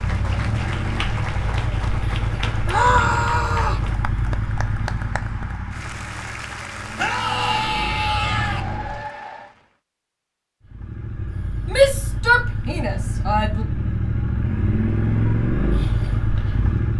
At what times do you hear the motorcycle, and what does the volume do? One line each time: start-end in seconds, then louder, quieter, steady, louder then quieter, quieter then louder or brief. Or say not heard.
0.0-9.1 quieter then louder
10.6-16.9 louder.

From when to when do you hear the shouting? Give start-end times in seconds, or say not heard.
2.6-3.9, 7.0-8.6, 11.7-13.7.